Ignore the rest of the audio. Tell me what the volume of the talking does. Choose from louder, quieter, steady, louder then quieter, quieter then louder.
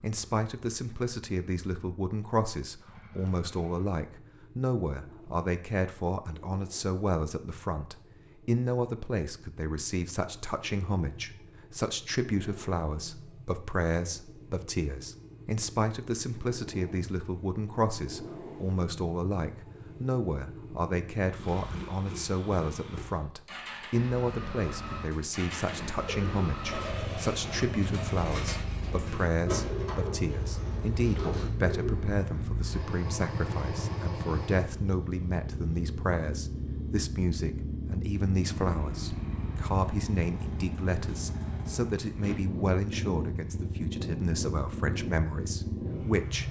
steady.